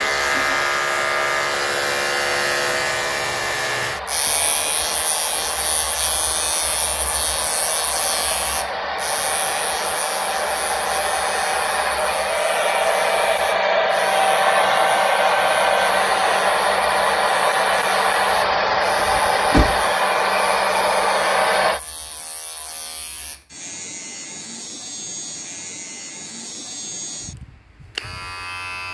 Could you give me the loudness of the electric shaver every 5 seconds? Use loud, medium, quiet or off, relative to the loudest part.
loud, medium, quiet, quiet, quiet, medium.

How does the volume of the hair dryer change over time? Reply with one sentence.
The volume of the hair dryer goes up.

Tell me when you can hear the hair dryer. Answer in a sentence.
The hair dryer can be heard from 0.0 to 21.8 s.